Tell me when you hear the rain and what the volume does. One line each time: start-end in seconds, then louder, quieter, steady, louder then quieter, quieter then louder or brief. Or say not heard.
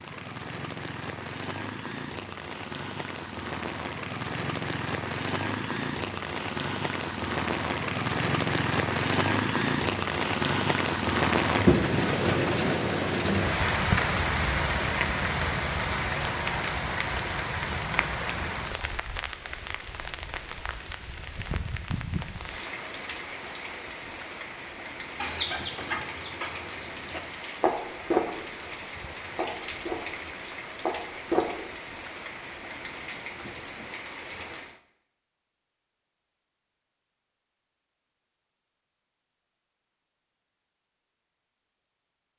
0.0-34.8 louder then quieter.